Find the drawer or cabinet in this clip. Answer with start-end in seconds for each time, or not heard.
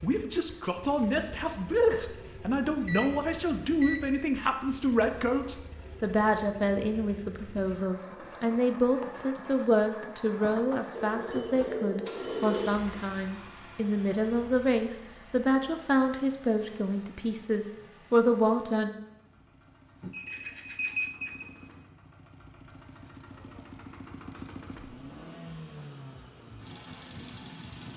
not heard.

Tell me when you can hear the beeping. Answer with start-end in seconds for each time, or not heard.
1.9-4.4, 10.9-12.8, 20.0-21.5.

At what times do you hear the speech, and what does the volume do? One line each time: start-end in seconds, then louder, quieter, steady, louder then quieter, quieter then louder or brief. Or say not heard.
0.0-18.9 steady.